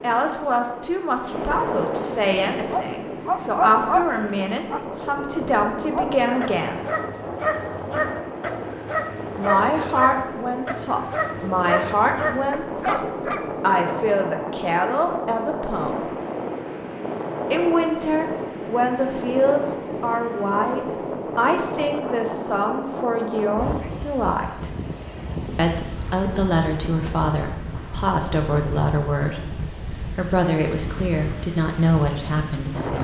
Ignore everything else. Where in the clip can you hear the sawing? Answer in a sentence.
The sawing can't be heard in this clip.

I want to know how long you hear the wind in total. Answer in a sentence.
You can hear the wind for 33 seconds altogether.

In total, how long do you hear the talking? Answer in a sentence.
You can hear the talking for 28 seconds altogether.